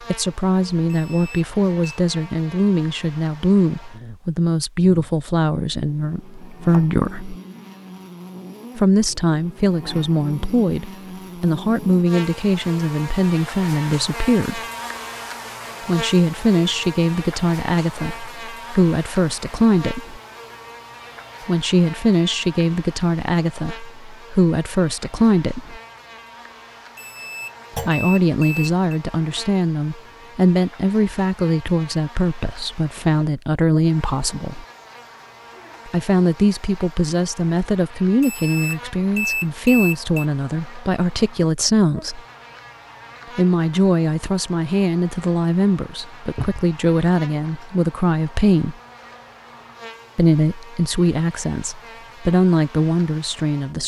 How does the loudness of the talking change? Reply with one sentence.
The loudness of the talking stays about the same.